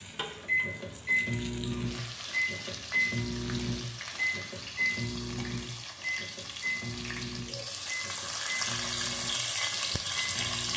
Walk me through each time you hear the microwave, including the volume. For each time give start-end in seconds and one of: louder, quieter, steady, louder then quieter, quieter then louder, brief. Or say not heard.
0.0-10.7 quieter.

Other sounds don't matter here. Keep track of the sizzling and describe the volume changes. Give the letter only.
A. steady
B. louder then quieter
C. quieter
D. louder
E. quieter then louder
D.